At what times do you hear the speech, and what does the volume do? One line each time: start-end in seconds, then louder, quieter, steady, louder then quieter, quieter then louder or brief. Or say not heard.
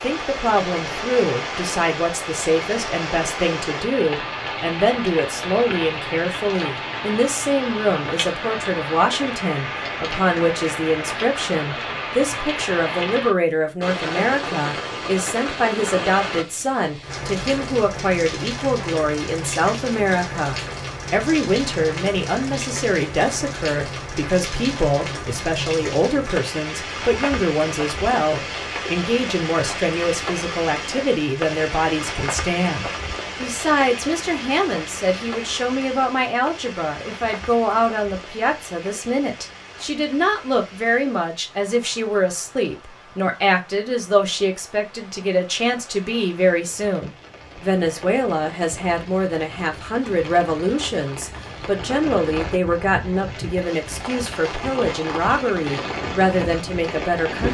0.0-57.4 steady.